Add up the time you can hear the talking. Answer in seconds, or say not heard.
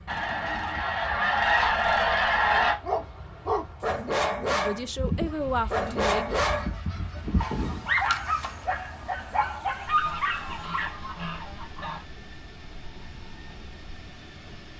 2 s.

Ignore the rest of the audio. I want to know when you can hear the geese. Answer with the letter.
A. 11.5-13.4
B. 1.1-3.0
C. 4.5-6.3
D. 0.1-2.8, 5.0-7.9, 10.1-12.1
D.